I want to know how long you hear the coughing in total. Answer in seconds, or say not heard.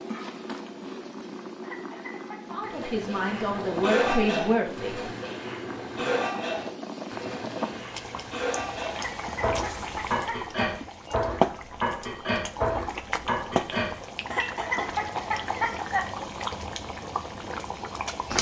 5 s.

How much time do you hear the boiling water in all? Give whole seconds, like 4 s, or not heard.
18 s.